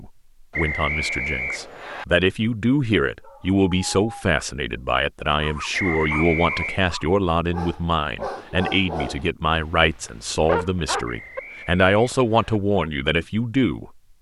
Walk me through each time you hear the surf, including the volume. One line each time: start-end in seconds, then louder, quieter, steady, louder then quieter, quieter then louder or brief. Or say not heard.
not heard.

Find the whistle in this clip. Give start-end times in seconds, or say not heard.
0.5-2.0, 5.7-6.8, 11.1-12.6.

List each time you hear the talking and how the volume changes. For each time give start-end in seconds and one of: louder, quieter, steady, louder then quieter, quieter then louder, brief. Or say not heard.
0.0-13.9 steady.